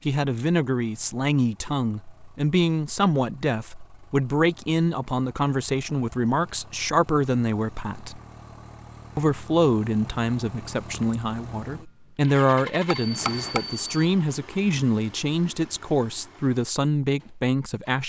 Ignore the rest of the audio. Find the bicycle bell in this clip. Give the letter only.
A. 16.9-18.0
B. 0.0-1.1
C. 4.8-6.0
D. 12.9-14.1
D.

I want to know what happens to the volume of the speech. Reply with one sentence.
The volume of the speech stays about the same.